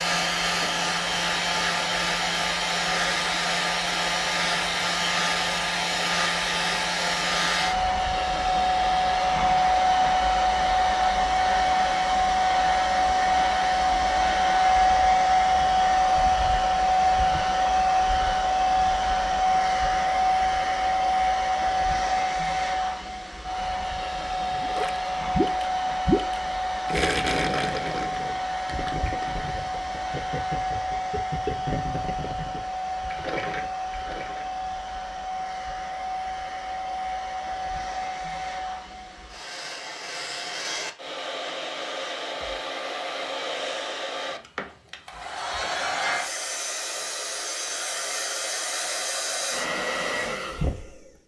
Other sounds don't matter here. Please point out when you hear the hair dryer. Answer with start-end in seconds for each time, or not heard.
0.0-51.1.